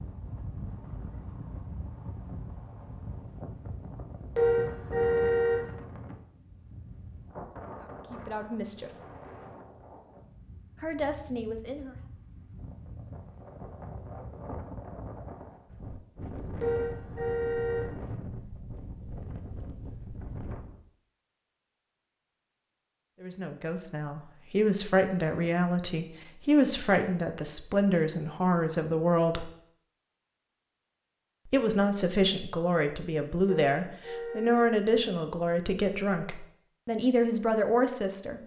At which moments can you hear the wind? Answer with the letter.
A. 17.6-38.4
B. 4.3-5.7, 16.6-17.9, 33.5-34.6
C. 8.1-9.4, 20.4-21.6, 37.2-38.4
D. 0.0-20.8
D.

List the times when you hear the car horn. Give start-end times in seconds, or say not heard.
4.3-5.7, 16.6-17.9, 33.5-34.6.